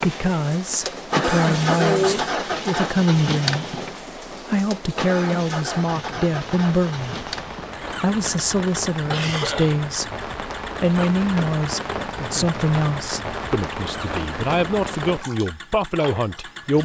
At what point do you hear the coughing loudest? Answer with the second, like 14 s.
2 s.